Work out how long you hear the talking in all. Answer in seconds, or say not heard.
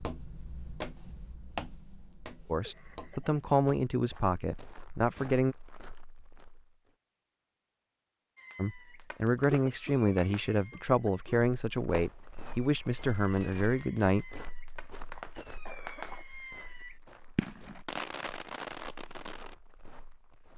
9 s.